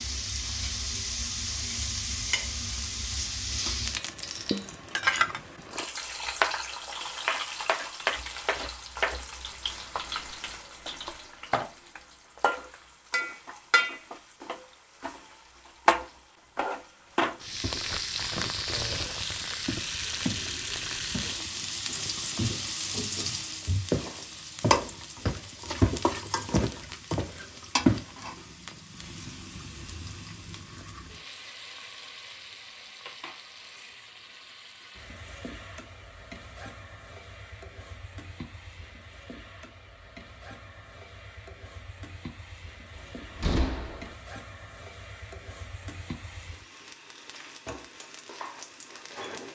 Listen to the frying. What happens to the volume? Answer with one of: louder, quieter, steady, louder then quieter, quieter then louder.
quieter.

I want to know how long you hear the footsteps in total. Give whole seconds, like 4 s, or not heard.
10 s.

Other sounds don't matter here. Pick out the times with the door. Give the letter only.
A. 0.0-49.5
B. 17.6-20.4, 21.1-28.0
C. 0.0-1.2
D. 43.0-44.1
D.